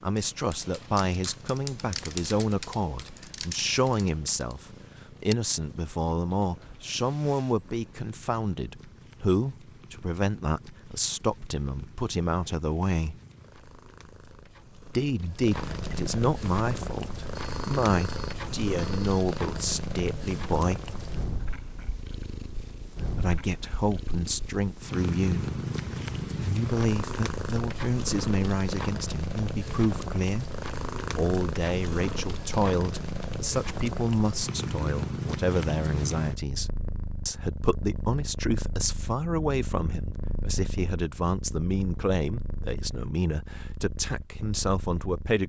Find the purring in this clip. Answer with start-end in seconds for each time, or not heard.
0.0-45.4.